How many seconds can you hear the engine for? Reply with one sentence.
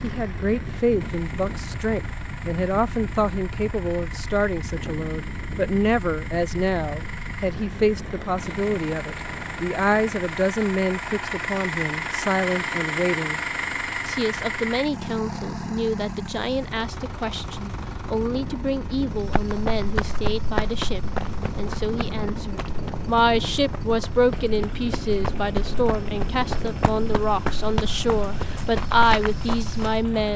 You can hear the engine for 30 seconds altogether.